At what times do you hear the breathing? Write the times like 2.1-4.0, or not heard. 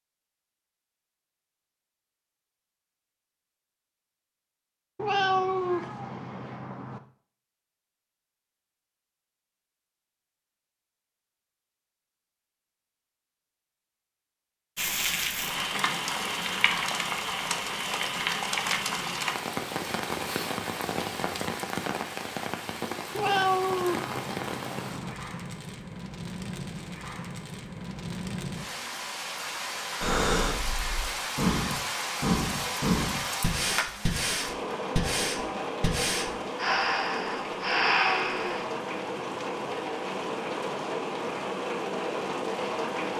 30.0-38.6.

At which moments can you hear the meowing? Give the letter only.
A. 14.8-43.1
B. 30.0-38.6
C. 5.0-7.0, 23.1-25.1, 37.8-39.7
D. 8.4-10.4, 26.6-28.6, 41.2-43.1
C.